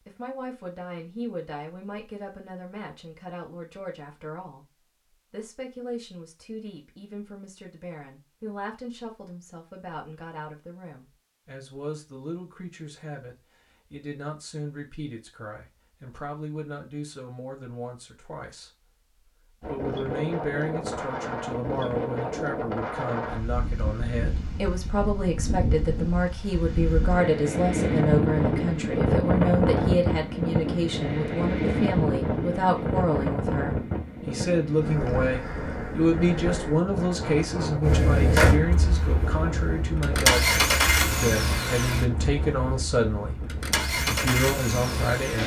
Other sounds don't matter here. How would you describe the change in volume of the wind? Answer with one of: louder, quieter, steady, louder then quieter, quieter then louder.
louder then quieter.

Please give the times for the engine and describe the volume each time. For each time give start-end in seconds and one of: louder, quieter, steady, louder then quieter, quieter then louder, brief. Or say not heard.
37.8-45.4 quieter then louder.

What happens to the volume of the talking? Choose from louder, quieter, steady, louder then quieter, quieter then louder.
louder.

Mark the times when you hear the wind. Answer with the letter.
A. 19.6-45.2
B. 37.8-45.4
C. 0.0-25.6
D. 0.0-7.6
A.